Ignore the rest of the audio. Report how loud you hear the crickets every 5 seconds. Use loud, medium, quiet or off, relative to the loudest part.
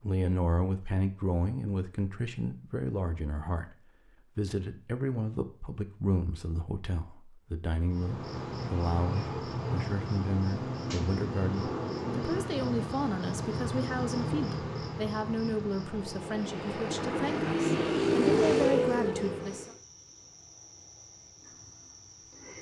off, loud, loud, medium, quiet.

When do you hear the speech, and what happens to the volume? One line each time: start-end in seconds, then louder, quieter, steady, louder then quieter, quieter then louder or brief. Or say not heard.
0.0-19.8 steady.